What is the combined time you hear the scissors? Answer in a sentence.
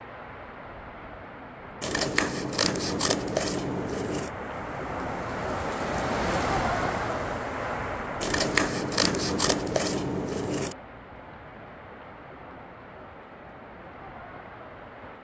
The scissors can be heard for 5 seconds in total.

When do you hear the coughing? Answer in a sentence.
You can't hear the coughing here.